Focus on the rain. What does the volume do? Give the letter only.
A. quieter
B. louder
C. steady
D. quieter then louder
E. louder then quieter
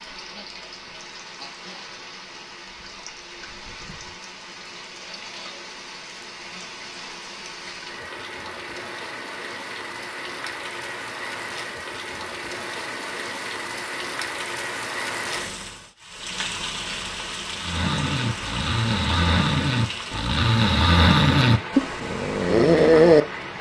B.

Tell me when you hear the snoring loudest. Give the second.
23 s.